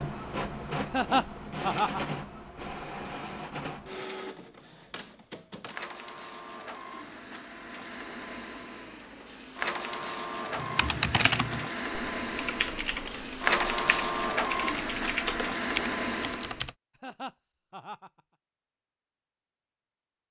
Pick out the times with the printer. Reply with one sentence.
You can hear the printer from 0.0 to 16.6 s.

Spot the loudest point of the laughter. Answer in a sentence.
The volume of the laughter peaks at 1 second.